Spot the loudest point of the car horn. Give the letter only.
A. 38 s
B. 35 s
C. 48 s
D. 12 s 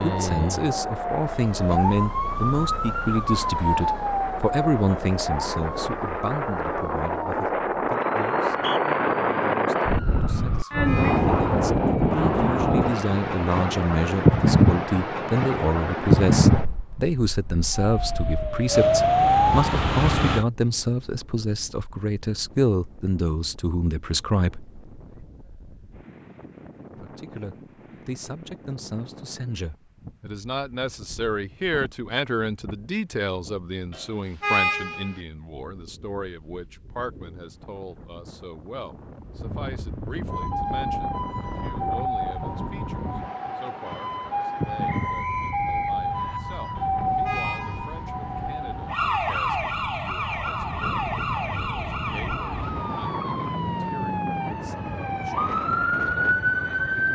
B.